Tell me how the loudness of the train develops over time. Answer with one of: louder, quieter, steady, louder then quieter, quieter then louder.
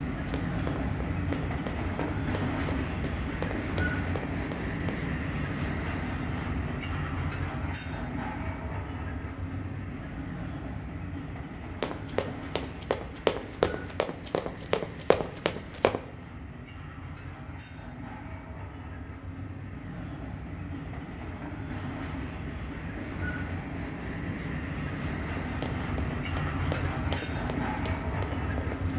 quieter then louder.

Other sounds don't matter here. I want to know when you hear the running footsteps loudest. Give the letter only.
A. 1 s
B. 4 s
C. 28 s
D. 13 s
D.